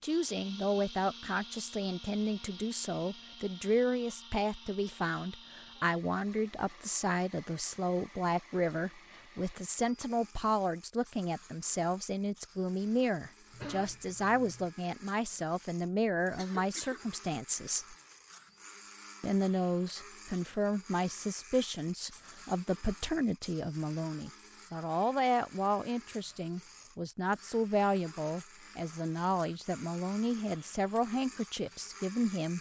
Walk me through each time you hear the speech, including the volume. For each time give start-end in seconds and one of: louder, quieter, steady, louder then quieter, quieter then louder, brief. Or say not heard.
0.0-17.9 steady
19.2-32.5 steady.